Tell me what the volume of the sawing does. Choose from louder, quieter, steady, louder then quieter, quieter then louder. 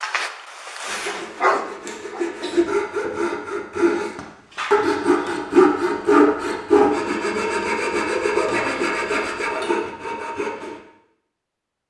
louder then quieter.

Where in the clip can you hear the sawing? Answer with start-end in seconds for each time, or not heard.
0.8-10.8.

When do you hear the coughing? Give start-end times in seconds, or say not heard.
1.9-2.7, 8.3-10.0.